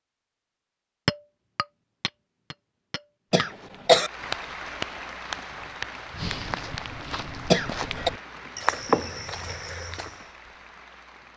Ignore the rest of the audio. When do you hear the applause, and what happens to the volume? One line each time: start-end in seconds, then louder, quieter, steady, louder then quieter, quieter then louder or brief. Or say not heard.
4.0-11.3 quieter.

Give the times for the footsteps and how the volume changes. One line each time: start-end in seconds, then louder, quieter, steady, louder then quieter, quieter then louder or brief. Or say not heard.
3.4-10.2 louder.